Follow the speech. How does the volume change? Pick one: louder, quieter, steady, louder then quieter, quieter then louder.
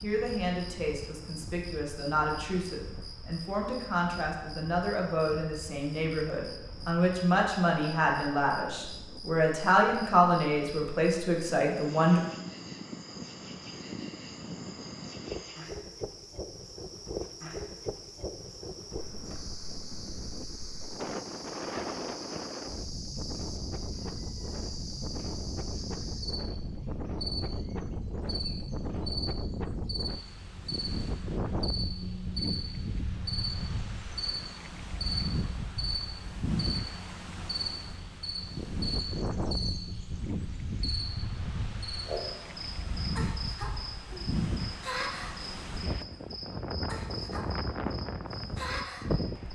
louder.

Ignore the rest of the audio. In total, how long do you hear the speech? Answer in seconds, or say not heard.
12 s.